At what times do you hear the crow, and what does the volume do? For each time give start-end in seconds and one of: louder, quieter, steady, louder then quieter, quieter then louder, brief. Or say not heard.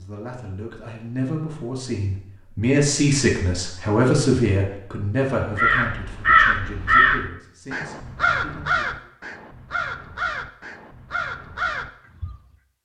5.5-12.4 quieter.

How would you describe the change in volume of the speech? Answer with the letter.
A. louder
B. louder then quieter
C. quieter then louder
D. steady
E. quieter
B.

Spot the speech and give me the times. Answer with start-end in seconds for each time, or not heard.
0.0-9.1.